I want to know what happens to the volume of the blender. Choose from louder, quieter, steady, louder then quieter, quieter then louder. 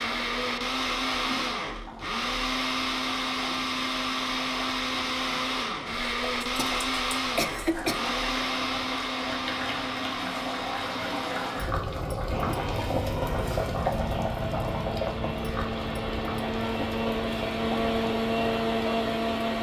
quieter then louder.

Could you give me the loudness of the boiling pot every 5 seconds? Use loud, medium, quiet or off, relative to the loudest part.
quiet, medium, loud, medium.